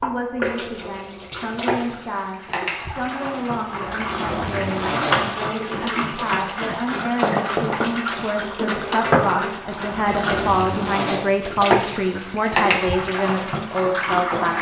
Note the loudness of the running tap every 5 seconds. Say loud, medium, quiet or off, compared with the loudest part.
medium, loud, loud.